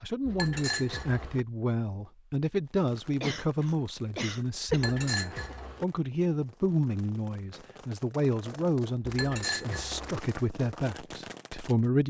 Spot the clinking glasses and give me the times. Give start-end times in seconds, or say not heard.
0.2-1.4, 4.7-5.8, 9.0-10.2.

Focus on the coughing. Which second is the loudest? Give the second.
5 s.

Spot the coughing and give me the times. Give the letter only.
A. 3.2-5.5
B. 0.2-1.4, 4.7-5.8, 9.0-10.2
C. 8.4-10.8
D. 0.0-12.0
A.